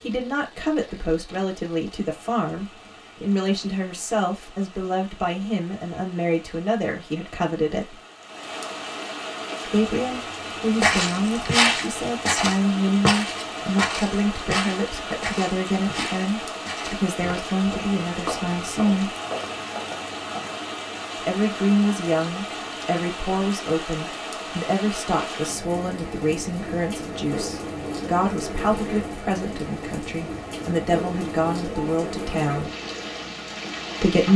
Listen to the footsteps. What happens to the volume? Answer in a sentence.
The loudness of the footsteps goes down.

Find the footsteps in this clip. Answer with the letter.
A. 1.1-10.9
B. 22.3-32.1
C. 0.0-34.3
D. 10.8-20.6
D.